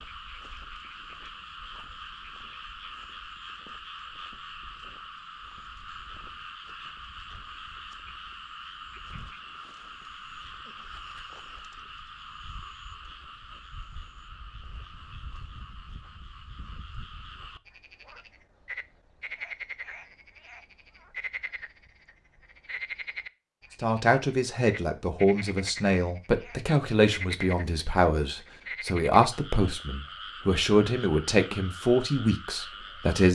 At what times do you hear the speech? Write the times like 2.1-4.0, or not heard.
23.8-33.3.